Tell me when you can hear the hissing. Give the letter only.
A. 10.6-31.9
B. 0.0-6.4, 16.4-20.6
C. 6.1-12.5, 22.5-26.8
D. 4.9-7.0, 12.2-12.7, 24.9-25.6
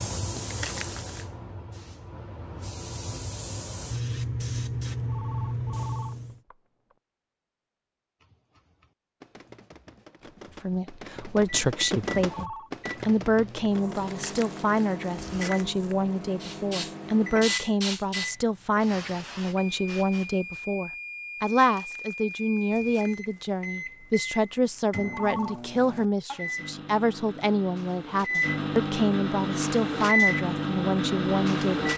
B.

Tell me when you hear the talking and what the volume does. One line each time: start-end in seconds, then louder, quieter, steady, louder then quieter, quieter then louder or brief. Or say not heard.
10.6-31.9 steady.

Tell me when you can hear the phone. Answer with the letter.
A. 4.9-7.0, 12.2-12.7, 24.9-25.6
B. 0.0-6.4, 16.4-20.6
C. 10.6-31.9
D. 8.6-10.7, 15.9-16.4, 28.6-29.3
A.